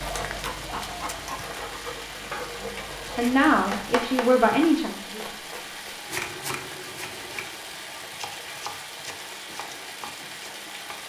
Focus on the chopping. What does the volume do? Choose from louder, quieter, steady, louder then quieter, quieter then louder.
quieter.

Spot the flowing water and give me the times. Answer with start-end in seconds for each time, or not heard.
0.0-11.0.